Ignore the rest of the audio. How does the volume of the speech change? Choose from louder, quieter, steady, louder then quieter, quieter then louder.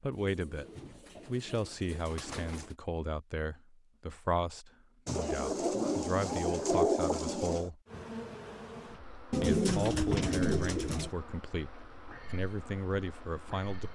steady.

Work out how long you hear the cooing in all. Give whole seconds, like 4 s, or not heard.
7 s.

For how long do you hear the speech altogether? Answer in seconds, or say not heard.
12 s.